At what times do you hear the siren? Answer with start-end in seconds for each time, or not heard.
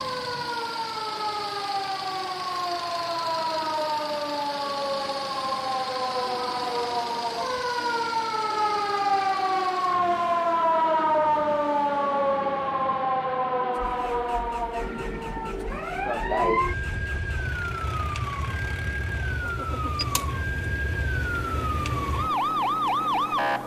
0.0-23.6.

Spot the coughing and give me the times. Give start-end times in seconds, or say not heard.
not heard.